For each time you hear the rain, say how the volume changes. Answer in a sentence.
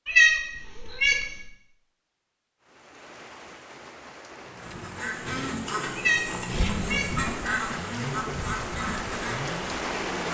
You can hear the rain from 2.6 to 10.2 s, getting louder.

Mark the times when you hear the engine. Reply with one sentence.
You can hear the engine from 4.3 to 10.2 s.